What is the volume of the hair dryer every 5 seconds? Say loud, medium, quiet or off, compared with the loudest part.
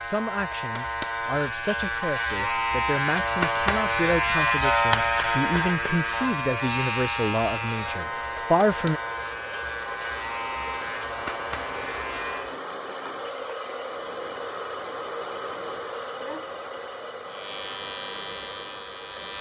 off, medium, loud, loud.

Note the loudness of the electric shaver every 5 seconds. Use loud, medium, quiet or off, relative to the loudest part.
loud, loud, medium, medium.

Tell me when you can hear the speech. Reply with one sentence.
You can hear the speech from 0.0 to 9.0 s.